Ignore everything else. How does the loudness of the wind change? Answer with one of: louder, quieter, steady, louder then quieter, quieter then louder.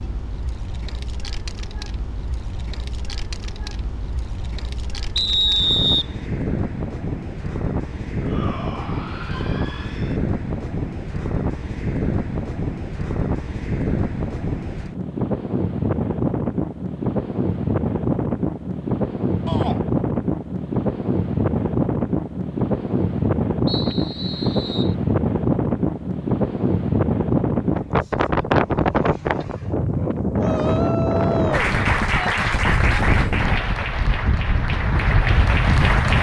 louder.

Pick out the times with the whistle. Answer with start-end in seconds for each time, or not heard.
5.2-6.0, 23.6-24.9.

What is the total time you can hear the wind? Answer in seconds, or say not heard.
36 s.